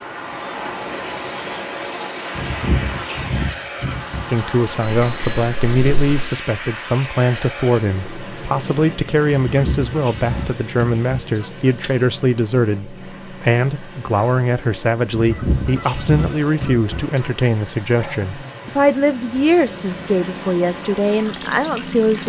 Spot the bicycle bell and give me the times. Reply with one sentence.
You can hear the bicycle bell from 4.8 to 6.3 s.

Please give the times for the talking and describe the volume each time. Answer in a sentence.
You can hear the talking from 4.3 to 22.2 s, at a steady volume.